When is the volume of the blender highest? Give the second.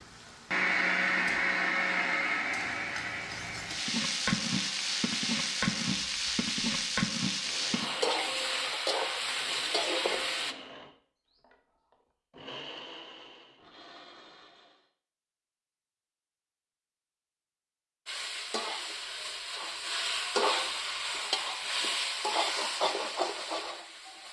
1 s.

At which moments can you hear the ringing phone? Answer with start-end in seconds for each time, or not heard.
not heard.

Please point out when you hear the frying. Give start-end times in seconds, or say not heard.
0.0-10.6, 18.1-24.2.